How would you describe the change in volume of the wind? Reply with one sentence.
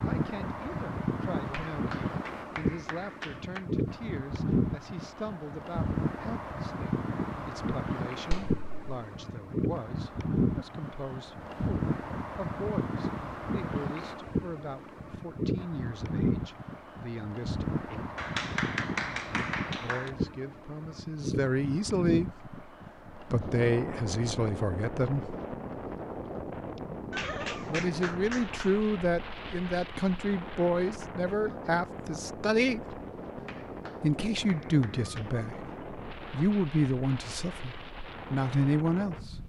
The volume of the wind goes down.